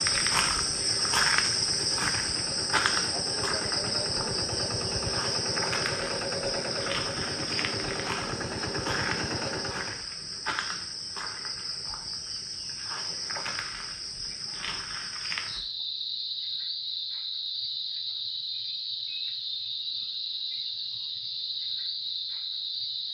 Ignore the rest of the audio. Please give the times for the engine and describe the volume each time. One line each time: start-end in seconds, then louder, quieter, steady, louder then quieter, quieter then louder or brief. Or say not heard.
0.0-10.1 louder.